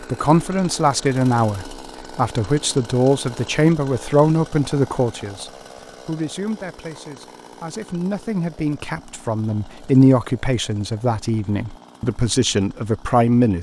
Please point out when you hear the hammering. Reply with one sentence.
You can't hear the hammering here.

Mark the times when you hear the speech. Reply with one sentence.
You can hear the speech from 0.0 to 13.5 s.